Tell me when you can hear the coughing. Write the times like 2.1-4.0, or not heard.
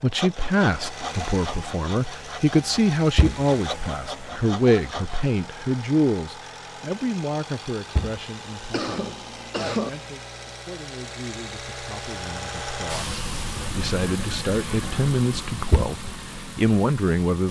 8.7-9.9.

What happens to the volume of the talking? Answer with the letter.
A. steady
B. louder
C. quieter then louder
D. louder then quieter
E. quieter
C.